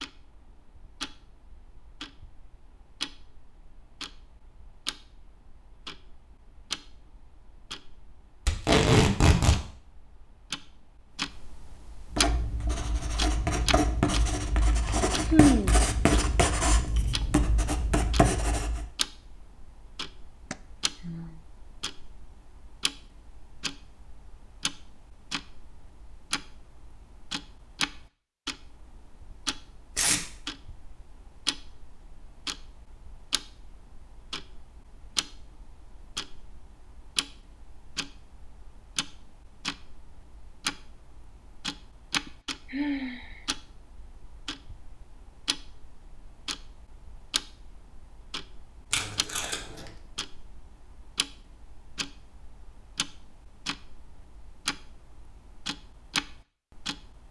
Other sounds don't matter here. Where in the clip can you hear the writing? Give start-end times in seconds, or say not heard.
12.1-18.9.